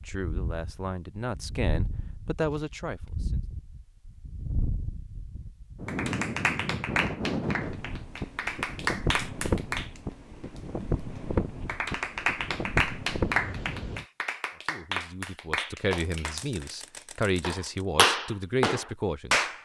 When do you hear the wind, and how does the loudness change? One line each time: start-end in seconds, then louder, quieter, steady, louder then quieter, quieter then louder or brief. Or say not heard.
0.0-14.1 louder.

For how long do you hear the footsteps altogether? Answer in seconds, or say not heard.
not heard.